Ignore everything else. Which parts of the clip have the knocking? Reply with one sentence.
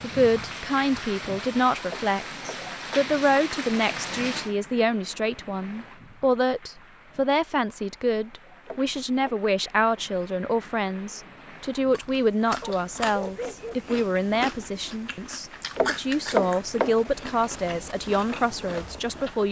The knocking can be heard from 1.9 to 3.1 s, from 8.7 to 9.3 s and from 15.8 to 17.0 s.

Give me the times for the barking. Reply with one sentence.
The barking can be heard from 12.6 to 14.1 s.